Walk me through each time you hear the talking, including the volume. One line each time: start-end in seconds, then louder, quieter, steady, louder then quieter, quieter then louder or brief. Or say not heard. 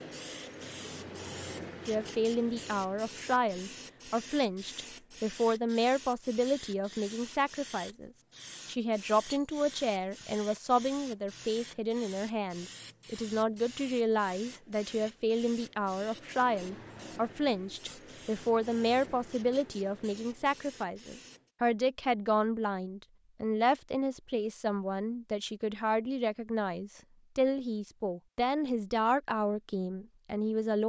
1.9-30.8 steady.